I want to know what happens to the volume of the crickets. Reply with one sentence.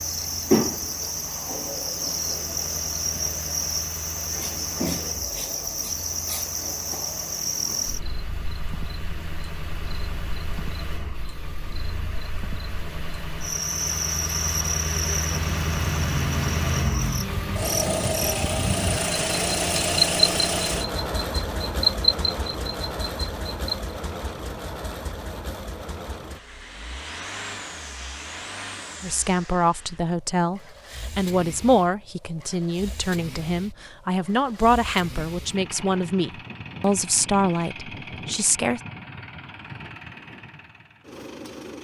The volume of the crickets goes down, then up.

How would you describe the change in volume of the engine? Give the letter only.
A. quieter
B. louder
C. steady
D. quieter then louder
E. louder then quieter
E.